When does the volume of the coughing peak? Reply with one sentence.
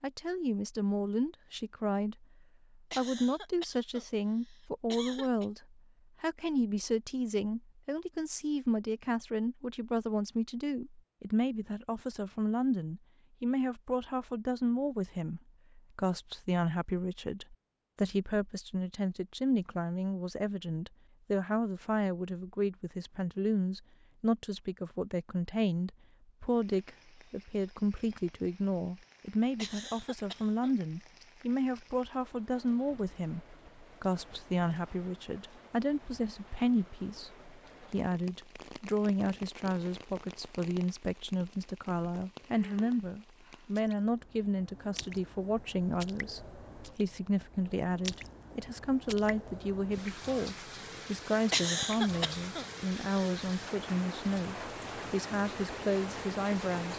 The loudest moment of the coughing is at 52 seconds.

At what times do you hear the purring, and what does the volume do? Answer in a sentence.
You can't hear the purring here.